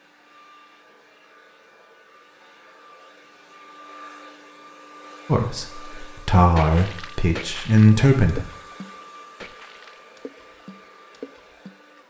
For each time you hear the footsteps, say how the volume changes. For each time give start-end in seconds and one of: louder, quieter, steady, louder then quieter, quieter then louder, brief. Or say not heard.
not heard.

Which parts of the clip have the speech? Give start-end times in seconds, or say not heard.
5.2-8.4.